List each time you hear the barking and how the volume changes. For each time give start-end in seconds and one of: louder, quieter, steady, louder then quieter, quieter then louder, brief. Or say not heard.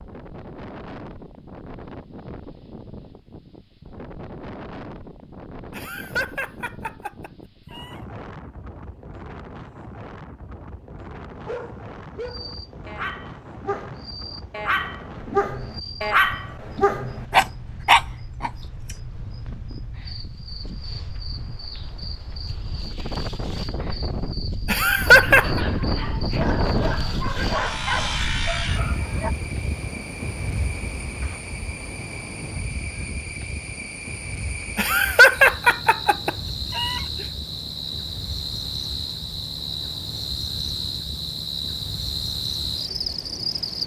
11.2-18.9 louder
25.1-29.3 louder then quieter.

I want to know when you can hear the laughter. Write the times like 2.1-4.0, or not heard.
5.7-8.0, 24.6-25.6, 34.8-37.0.